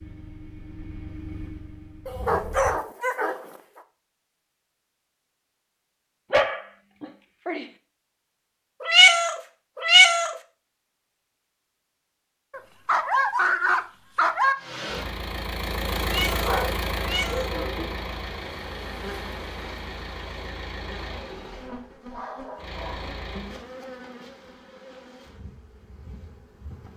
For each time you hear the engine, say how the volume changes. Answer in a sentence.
You can hear the engine briefly from 0.0 to 2.8 s; and from 14.6 to 23.6 s, getting quieter.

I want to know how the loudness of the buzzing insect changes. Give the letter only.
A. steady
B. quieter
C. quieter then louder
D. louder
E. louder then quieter
B.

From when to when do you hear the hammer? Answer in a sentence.
You can't hear the hammer here.